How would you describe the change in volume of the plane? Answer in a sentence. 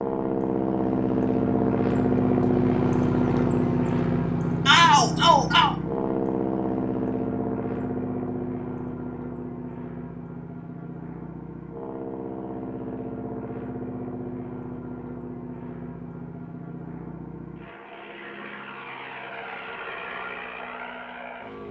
The loudness of the plane goes down.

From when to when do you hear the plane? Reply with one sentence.
You can hear the plane from 0.0 to 21.6 s.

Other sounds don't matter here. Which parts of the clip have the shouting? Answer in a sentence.
You can hear the shouting from 4.7 to 5.8 s.